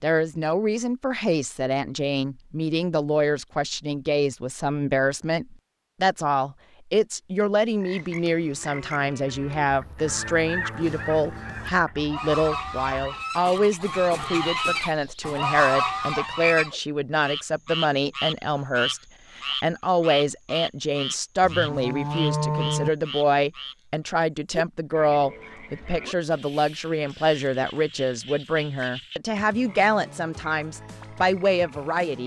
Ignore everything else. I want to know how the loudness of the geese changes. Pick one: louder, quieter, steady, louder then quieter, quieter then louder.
louder.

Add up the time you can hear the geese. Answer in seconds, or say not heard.
7 s.